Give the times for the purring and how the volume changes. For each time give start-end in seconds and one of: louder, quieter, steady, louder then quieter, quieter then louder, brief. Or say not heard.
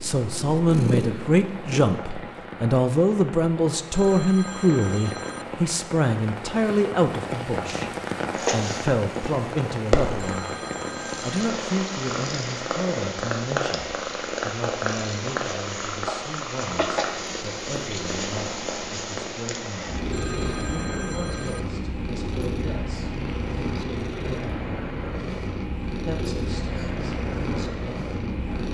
0.0-1.9 brief
8.3-28.6 steady.